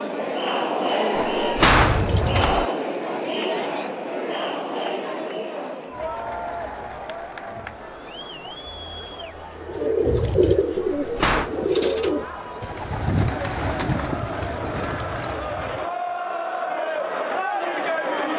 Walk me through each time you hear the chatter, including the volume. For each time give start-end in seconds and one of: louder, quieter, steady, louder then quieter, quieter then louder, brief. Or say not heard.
0.0-18.3 quieter then louder.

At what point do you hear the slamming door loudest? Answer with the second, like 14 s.
2 s.